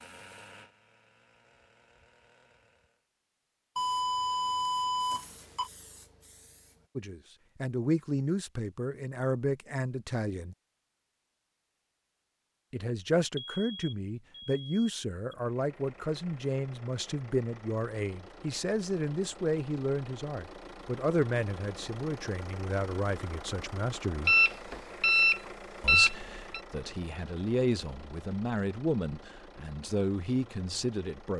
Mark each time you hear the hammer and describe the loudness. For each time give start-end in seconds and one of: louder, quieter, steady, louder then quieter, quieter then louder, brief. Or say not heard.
not heard.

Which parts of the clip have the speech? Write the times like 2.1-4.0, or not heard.
7.0-10.6, 12.7-24.4, 25.8-31.3.